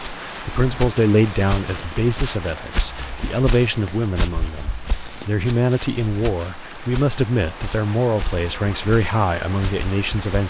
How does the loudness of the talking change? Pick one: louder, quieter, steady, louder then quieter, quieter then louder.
steady.